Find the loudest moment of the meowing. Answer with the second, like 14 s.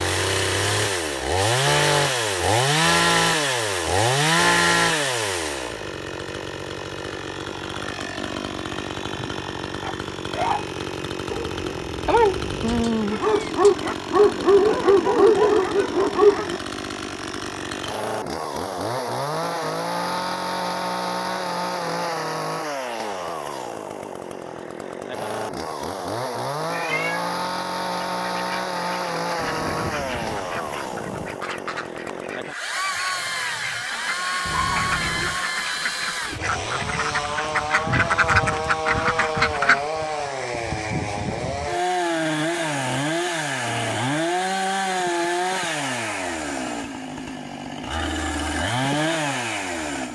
13 s.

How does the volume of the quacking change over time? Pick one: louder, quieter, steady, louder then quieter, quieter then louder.
louder.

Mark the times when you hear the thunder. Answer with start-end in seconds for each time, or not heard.
29.4-31.4.